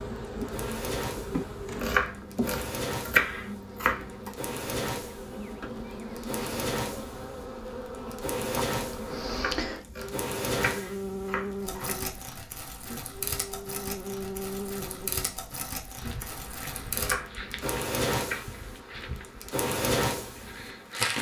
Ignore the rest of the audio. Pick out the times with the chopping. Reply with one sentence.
You can hear the chopping from 1.8 to 4.3 s, from 9.2 to 11.9 s and from 16.9 to 18.4 s.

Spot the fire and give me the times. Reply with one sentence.
You can hear the fire from 0.2 to 21.1 s.